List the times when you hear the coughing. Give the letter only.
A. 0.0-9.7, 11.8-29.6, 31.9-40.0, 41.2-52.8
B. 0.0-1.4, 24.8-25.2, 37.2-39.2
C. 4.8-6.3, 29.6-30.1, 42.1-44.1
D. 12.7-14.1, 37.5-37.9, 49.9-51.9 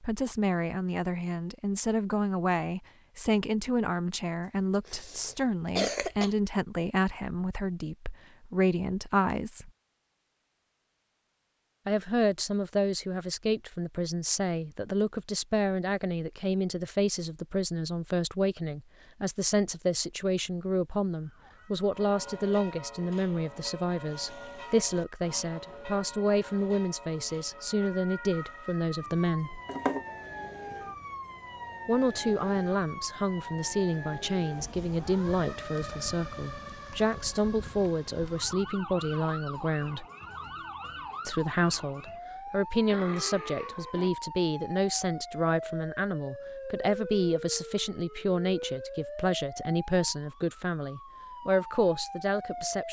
C.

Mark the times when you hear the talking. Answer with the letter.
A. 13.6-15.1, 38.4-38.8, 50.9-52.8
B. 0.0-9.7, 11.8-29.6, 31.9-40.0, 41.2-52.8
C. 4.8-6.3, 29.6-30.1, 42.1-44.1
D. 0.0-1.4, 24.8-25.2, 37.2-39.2
B.